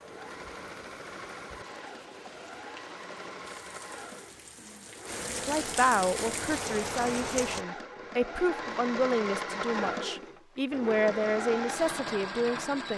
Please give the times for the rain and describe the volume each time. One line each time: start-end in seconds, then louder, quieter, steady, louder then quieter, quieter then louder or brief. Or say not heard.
0.0-7.7 louder.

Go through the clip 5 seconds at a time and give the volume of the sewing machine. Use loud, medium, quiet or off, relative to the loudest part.
medium, loud, loud.